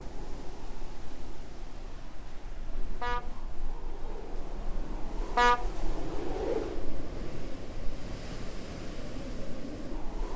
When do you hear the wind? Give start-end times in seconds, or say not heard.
0.0-10.3.